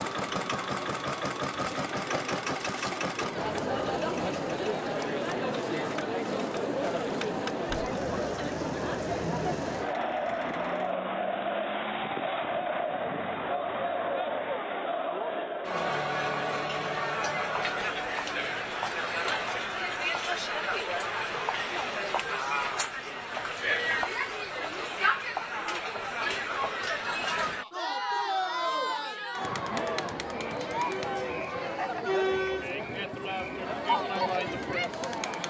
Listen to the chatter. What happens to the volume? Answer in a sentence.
The loudness of the chatter stays about the same.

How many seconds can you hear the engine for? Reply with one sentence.
The engine can be heard for 11 seconds in total.